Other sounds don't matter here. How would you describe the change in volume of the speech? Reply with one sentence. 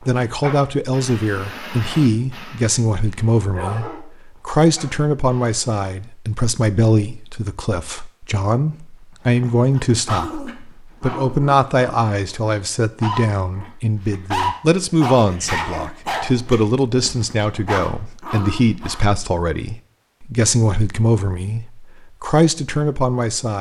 The loudness of the speech stays about the same.